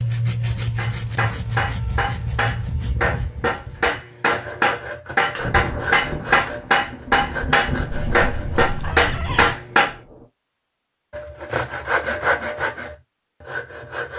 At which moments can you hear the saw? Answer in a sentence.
You can hear the saw from 0.0 to 9.1 s and from 11.1 to 14.1 s.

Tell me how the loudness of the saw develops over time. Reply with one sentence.
The loudness of the saw goes down, then up.